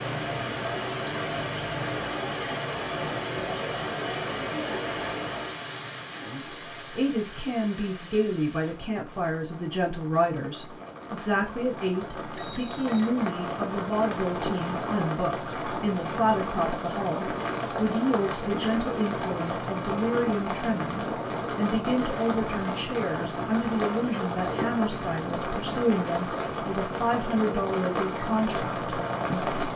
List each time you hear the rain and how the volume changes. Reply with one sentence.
You can hear the rain from 0.0 to 29.7 s, getting quieter then louder.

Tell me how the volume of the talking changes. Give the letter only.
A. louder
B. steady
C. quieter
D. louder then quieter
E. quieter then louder
B.